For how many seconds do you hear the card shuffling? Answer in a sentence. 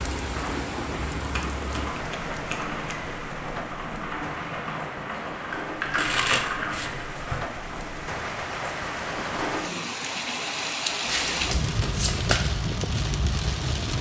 You can hear the card shuffling for 4 seconds altogether.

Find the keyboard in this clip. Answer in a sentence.
The keyboard can be heard from 0.3 to 7.0 s.